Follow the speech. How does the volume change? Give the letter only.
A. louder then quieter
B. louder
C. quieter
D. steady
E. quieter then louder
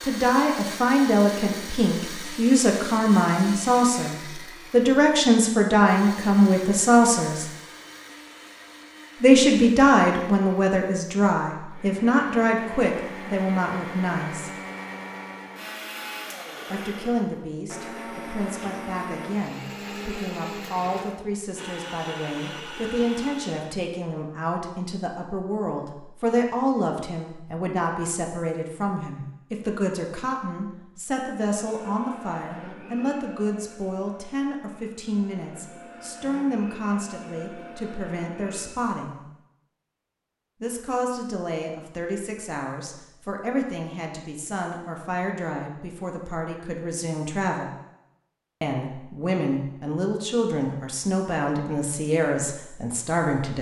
C.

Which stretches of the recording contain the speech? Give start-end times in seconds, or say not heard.
0.0-7.5, 9.2-14.5, 16.7-39.2, 40.6-47.7, 48.6-53.5.